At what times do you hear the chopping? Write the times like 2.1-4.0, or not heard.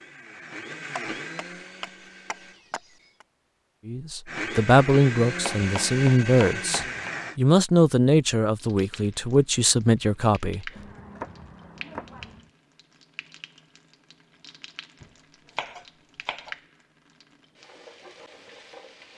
1.1-3.2, 5.4-7.1, 10.8-12.5, 15.0-16.6.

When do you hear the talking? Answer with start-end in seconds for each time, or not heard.
3.9-10.7.